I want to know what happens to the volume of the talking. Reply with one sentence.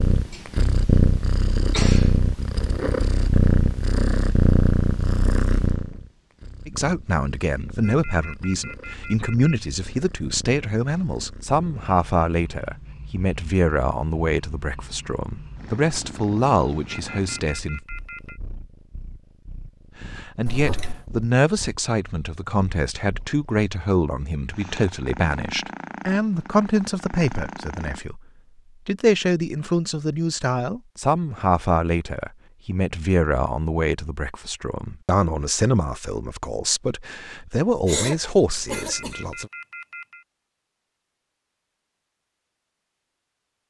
The volume of the talking stays about the same.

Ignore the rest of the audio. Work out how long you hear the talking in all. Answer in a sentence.
The talking can be heard for 30 seconds in total.